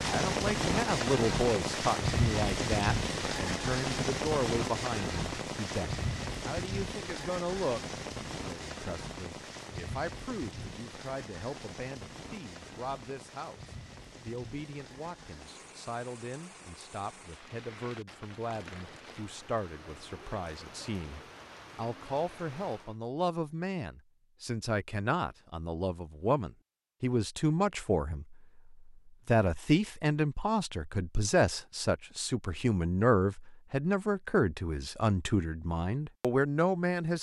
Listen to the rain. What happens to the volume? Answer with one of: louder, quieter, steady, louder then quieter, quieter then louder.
quieter.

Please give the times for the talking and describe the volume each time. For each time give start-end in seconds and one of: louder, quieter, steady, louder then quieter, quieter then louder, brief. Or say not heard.
0.0-37.1 quieter then louder.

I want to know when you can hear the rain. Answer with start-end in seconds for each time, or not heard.
0.0-23.0.